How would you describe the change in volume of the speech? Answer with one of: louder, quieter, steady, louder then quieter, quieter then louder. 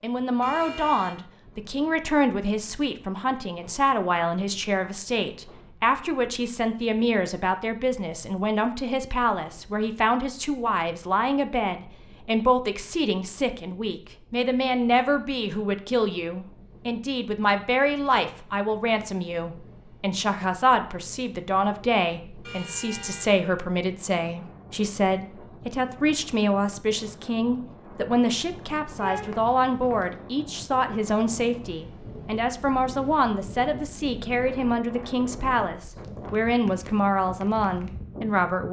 steady.